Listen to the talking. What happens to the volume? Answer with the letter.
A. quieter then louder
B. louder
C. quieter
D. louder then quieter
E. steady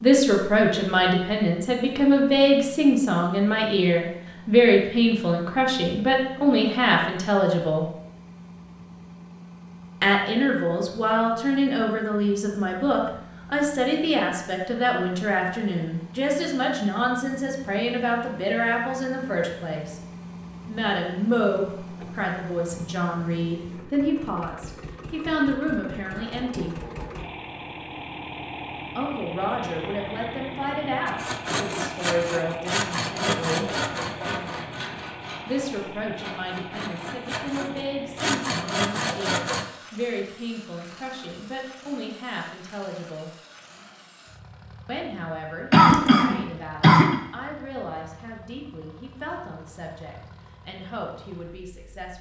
C.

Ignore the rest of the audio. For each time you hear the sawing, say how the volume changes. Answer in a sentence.
The sawing can be heard from 31.1 to 39.6 s, getting quieter then louder.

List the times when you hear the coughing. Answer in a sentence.
You can hear the coughing from 45.7 to 47.1 s.